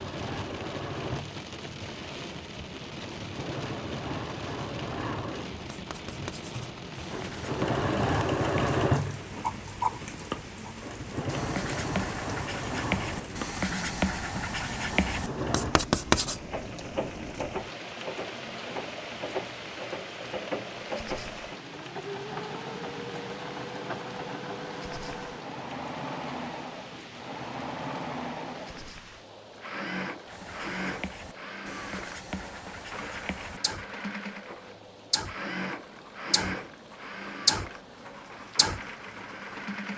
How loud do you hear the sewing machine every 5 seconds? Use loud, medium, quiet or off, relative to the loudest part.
medium, loud, medium, medium, medium, medium, medium, medium.